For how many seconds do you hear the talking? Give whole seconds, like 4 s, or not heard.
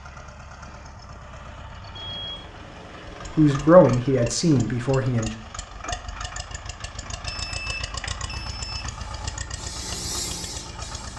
2 s.